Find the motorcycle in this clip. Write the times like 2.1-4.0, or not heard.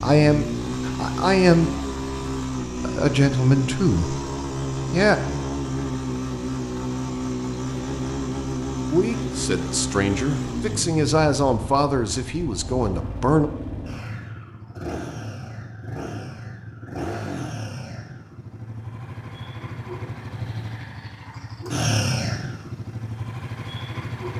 0.0-24.3.